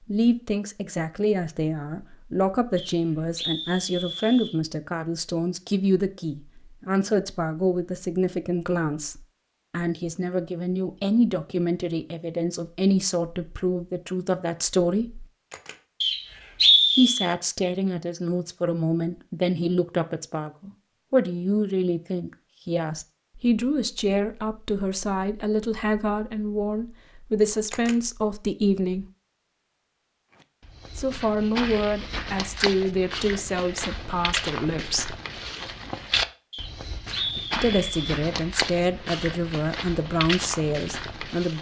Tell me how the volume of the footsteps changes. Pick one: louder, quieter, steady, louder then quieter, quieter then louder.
steady.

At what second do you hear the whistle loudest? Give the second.
17 s.